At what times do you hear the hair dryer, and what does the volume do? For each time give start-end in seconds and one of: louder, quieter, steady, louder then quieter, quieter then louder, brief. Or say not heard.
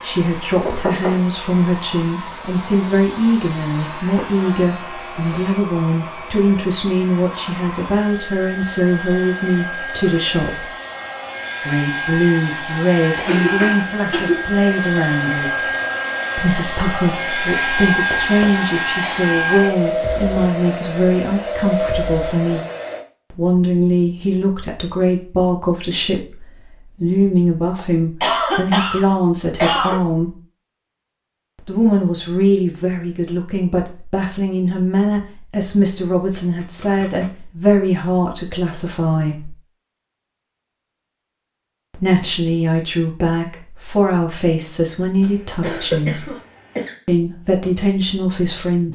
0.0-23.1 louder.